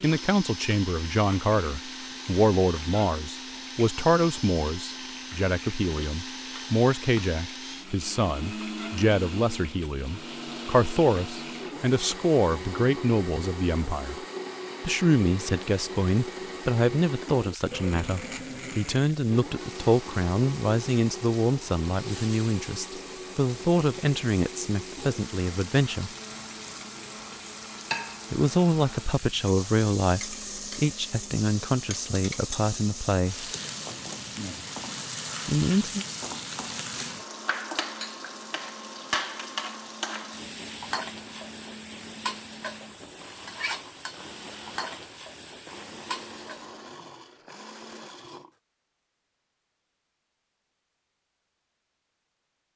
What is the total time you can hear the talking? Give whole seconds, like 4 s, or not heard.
31 s.